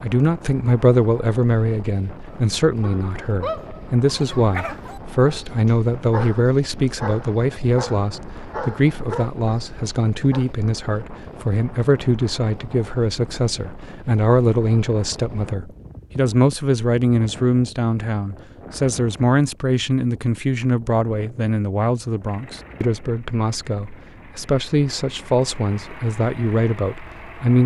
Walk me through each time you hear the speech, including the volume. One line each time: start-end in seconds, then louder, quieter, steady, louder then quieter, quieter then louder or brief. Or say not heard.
0.0-27.6 steady.